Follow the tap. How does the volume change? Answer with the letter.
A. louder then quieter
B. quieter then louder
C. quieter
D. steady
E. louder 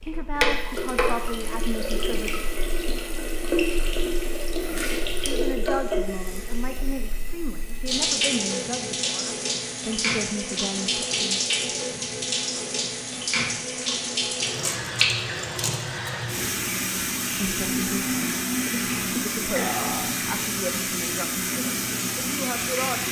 D.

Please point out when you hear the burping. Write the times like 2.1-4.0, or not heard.
19.5-20.1.